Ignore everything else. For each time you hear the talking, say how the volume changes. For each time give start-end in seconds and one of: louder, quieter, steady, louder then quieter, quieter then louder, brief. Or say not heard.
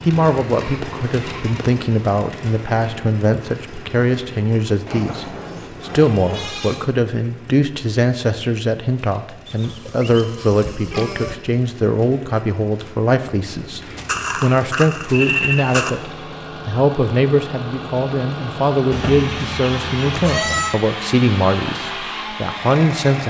0.1-23.2 steady.